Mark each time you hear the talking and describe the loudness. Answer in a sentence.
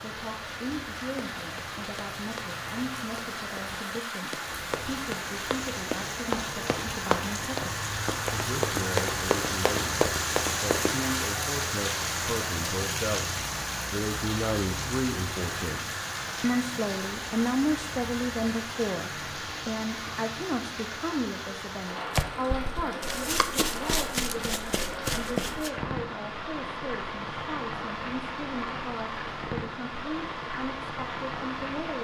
The talking can be heard from 0.0 to 31.9 s, getting louder then quieter.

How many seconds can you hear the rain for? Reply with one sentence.
The rain can be heard for 32 seconds in total.